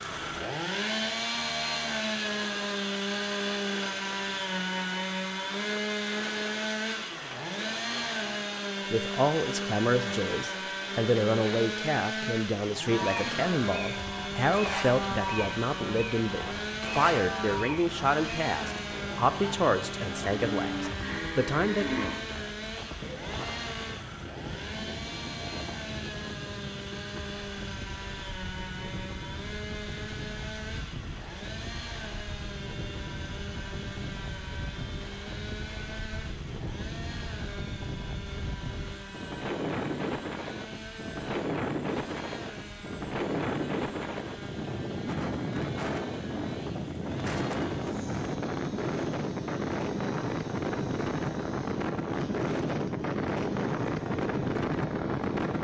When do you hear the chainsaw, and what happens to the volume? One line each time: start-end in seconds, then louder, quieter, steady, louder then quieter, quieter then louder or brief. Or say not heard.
0.0-55.5 quieter.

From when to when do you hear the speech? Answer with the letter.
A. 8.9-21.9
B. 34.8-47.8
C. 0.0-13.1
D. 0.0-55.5
A.